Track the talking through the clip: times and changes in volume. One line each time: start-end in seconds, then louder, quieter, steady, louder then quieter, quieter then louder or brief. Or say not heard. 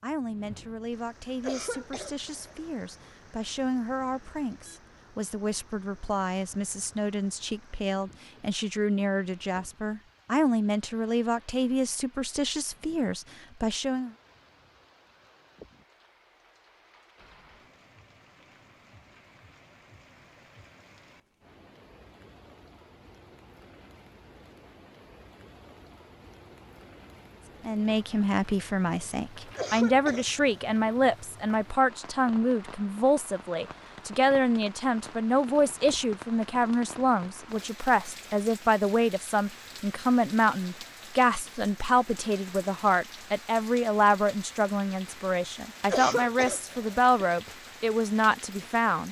0.0-14.1 louder
27.6-49.0 steady.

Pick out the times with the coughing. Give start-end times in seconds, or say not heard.
1.4-2.5, 29.6-30.9, 45.9-47.5.